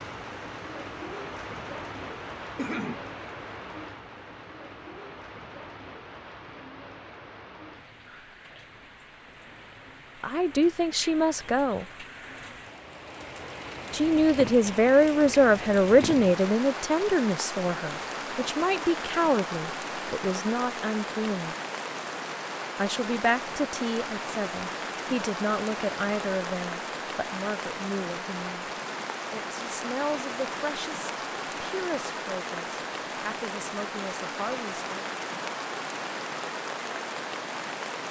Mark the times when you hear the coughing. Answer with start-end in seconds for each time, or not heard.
2.5-3.0.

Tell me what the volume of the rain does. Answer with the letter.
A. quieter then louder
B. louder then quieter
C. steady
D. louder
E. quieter
D.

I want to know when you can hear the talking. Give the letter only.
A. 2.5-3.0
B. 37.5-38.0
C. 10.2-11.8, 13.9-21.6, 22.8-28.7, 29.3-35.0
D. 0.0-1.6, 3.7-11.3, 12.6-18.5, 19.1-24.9
C.